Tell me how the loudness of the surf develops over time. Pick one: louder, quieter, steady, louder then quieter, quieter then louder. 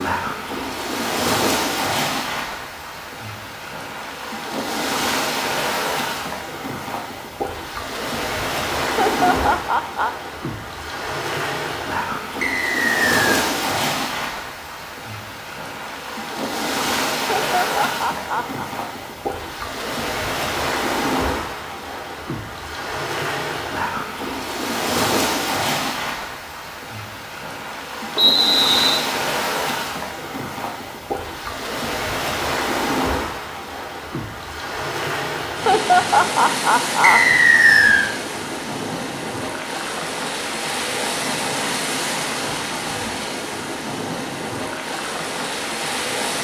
steady.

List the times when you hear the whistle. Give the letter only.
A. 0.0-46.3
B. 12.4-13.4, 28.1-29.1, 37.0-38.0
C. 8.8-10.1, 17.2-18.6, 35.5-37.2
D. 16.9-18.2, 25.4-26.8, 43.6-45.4
B.